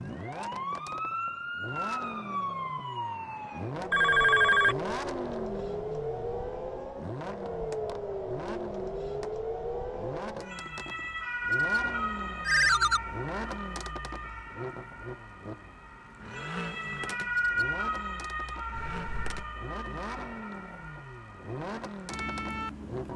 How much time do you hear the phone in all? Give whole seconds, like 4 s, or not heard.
2 s.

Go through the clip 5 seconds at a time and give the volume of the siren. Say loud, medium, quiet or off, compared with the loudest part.
loud, loud, loud, loud, medium.